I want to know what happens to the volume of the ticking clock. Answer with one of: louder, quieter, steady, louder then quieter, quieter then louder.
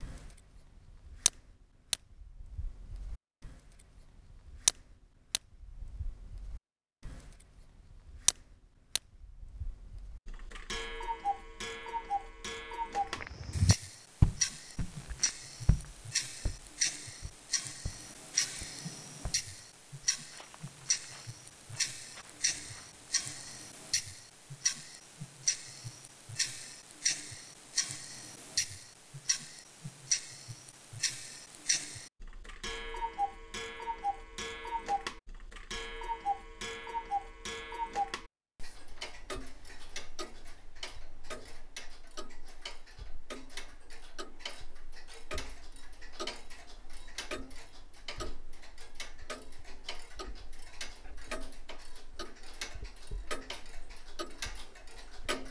quieter.